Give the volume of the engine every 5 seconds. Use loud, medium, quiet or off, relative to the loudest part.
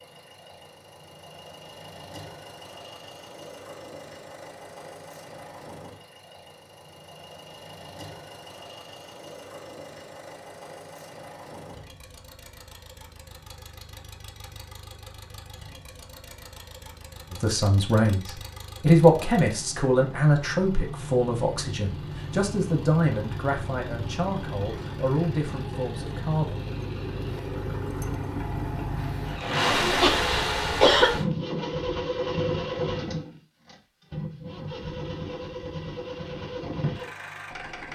quiet, quiet, quiet, quiet, medium, loud, loud, medium.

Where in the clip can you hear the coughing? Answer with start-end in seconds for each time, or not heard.
29.9-31.2.